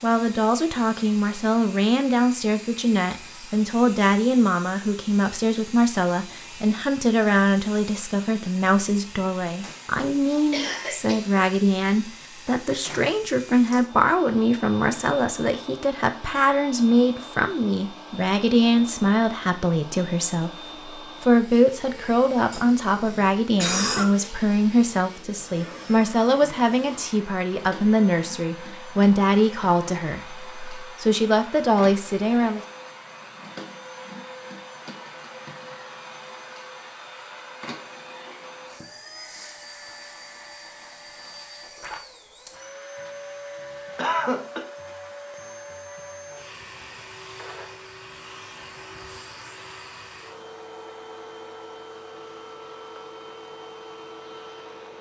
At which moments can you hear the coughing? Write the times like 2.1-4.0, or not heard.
10.5-11.4, 22.5-24.3, 44.0-44.6.